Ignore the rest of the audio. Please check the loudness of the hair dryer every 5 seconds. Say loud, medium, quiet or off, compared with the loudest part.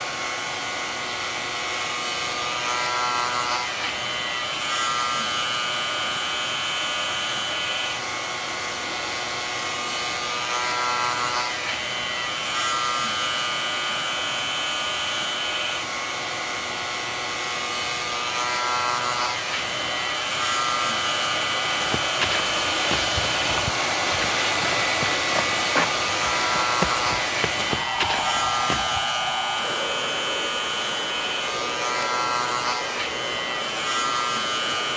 medium, medium, medium, medium, loud, loud, medium.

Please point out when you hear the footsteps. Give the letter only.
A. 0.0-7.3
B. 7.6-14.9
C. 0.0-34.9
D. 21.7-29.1
D.